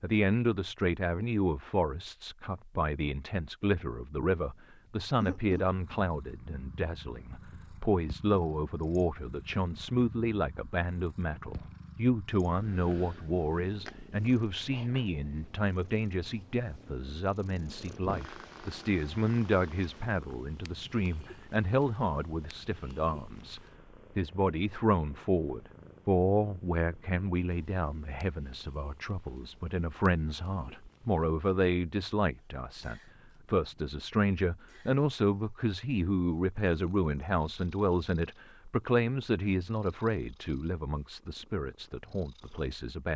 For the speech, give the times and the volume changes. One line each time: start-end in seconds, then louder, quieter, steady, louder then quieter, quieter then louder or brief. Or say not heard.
0.0-43.1 steady.